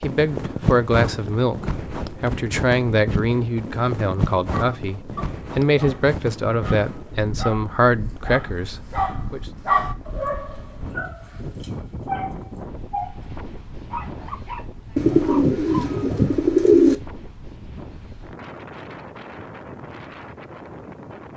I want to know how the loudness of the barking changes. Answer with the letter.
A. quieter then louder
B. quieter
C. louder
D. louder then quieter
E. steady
D.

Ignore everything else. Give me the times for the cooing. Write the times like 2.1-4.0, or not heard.
14.9-16.9.